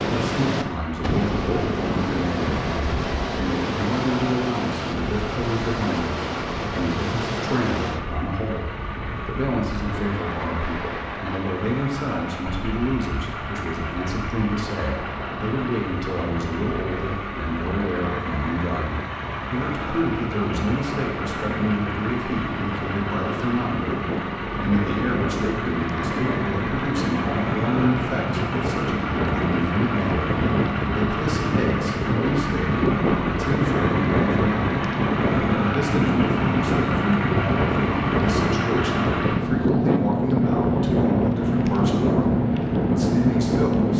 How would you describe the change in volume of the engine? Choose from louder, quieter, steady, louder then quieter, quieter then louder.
louder.